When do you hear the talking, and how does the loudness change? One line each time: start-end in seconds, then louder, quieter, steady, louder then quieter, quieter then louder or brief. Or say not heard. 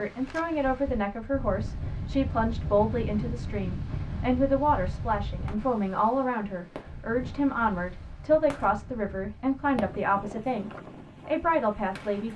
0.0-12.3 steady.